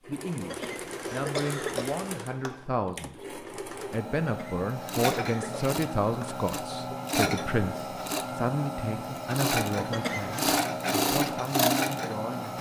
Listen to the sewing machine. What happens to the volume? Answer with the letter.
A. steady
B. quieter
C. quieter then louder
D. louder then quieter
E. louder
E.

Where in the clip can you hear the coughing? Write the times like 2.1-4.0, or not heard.
0.5-2.6, 4.2-6.5, 9.9-10.6.